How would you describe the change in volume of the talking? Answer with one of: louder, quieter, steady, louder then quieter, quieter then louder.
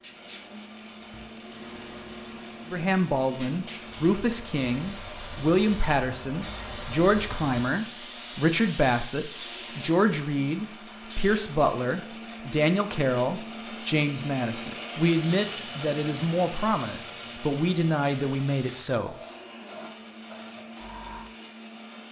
steady.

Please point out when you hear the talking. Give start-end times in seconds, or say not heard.
2.7-19.1.